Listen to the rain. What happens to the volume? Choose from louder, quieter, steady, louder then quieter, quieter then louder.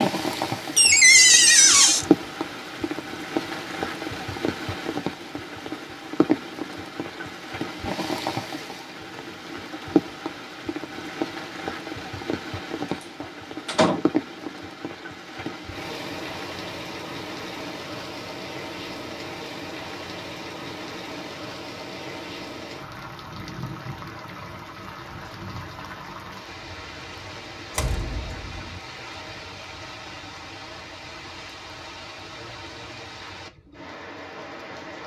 quieter.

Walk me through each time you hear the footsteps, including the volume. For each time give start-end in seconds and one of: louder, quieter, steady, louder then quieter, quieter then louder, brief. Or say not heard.
not heard.